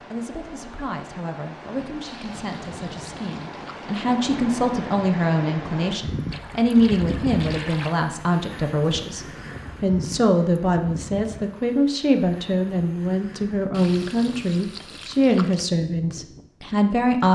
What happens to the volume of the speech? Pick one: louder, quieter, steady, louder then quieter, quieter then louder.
louder.